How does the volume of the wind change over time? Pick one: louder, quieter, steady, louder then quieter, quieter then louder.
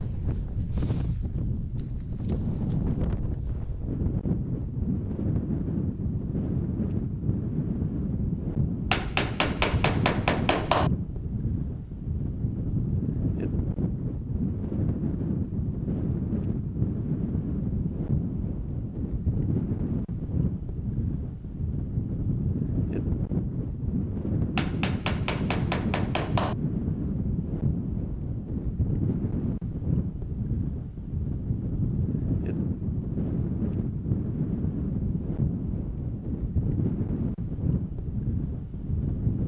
steady.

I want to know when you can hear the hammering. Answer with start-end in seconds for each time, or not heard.
8.9-10.9, 24.6-26.6.